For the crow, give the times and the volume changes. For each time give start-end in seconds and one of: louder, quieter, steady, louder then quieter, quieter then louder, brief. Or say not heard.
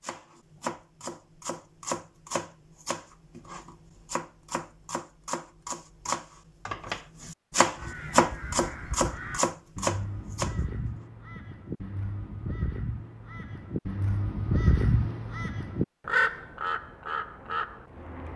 7.8-18.3 louder.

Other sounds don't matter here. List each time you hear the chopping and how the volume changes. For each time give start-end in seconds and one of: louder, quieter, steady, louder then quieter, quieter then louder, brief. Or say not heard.
0.0-10.9 quieter then louder.